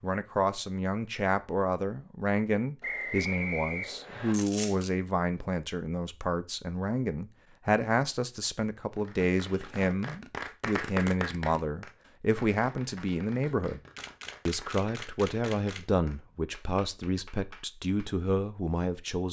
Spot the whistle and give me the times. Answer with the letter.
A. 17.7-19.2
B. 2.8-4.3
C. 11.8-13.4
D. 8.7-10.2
B.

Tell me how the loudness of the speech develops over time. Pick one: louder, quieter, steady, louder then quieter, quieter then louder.
steady.